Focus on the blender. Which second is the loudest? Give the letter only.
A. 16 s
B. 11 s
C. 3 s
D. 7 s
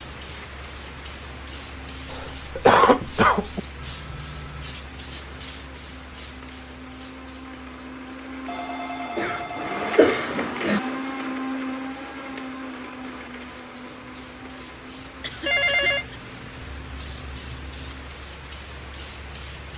B.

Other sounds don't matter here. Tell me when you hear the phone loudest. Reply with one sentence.
The volume of the phone peaks at 16 seconds.